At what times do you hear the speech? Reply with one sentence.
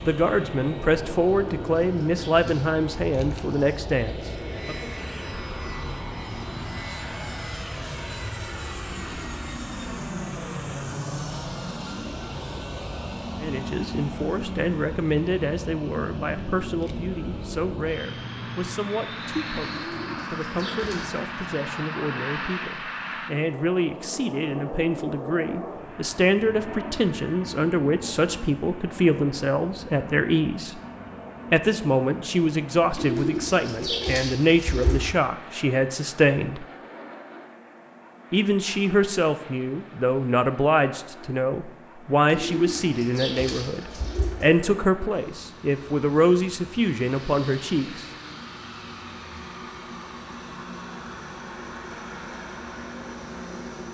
You can hear the speech from 0.0 to 4.8 s, from 13.4 to 30.8 s, from 31.5 to 36.6 s and from 38.3 to 48.0 s.